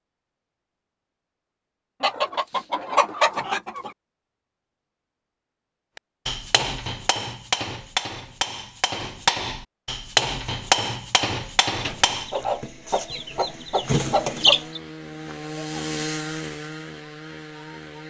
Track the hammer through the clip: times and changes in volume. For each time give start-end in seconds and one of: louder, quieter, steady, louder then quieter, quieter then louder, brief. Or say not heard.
6.0-12.3 louder then quieter.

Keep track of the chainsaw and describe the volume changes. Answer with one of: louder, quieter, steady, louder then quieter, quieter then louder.
louder then quieter.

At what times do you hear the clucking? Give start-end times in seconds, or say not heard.
2.0-3.9, 11.8-14.8.